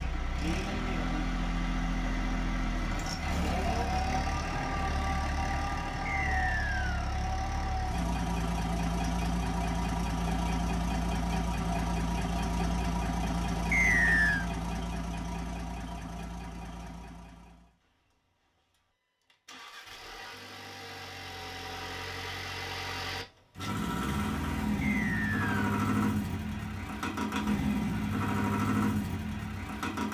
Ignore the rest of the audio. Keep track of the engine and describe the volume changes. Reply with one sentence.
The loudness of the engine goes down, then up.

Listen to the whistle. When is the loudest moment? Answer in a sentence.
The volume of the whistle peaks at 14 seconds.